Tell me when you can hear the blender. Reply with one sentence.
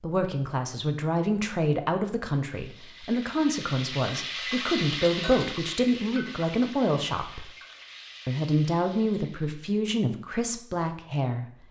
The blender can't be heard in this clip.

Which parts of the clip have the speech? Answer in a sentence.
You can hear the speech from 0.0 to 7.5 s and from 8.2 to 11.4 s.